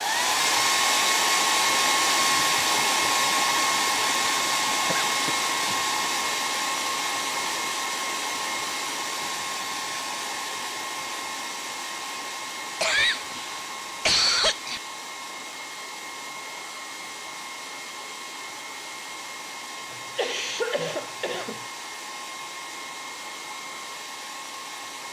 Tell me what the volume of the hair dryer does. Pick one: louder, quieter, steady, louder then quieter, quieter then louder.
quieter.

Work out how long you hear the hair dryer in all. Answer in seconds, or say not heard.
25 s.